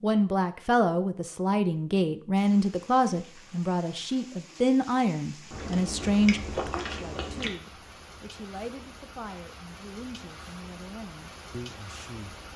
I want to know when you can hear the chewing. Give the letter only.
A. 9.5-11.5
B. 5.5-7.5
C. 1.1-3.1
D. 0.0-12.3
B.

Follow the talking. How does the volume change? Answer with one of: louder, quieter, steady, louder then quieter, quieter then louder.
quieter.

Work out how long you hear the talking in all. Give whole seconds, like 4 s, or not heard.
12 s.